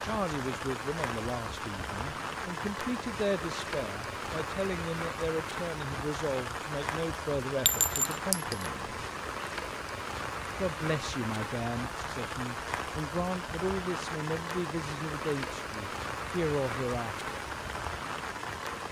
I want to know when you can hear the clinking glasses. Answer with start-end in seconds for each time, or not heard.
7.7-8.7.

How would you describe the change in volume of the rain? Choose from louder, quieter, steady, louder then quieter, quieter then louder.
steady.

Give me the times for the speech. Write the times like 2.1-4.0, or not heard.
0.0-9.1, 10.6-17.4.